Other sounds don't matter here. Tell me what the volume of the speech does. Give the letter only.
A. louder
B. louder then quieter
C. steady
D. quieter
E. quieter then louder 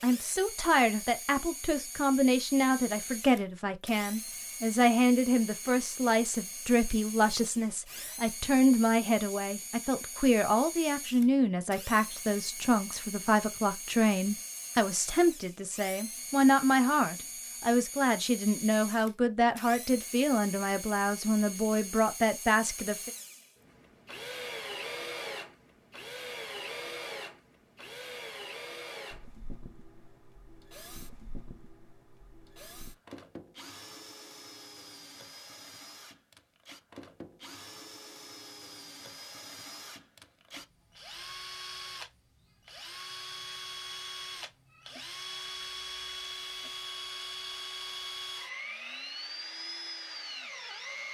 C.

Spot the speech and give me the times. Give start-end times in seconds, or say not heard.
0.0-23.1.